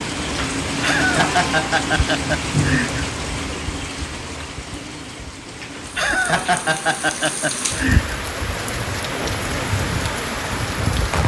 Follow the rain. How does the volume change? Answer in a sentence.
The volume of the rain goes down, then up.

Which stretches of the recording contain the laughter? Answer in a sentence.
The laughter can be heard from 0.7 to 3.0 s and from 5.8 to 8.2 s.